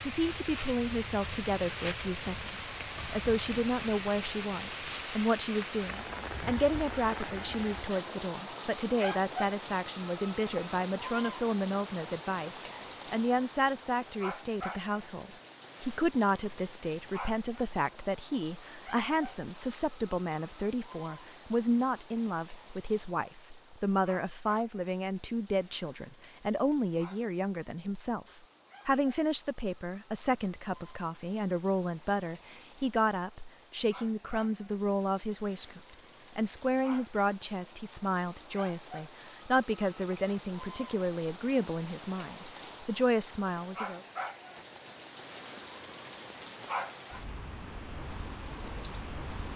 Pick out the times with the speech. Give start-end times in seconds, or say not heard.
0.0-44.0.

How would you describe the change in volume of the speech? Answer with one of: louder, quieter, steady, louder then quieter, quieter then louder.
steady.